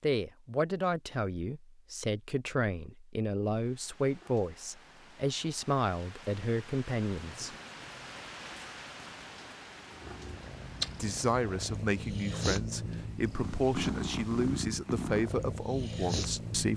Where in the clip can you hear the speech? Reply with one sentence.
The speech can be heard from 0.0 to 7.5 s and from 10.9 to 16.7 s.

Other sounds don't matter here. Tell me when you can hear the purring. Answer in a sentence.
The purring can be heard from 9.8 to 16.7 s.